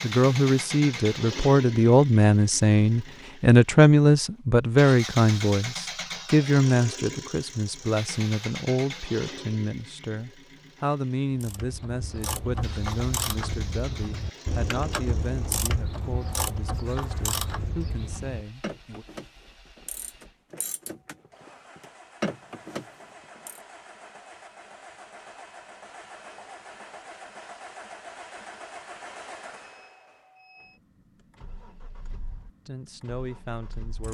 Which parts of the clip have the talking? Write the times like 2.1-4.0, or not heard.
0.0-19.1, 32.6-34.0.